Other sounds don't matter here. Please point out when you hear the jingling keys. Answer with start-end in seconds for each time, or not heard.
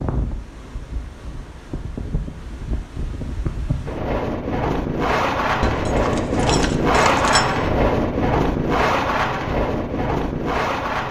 5.6-7.5.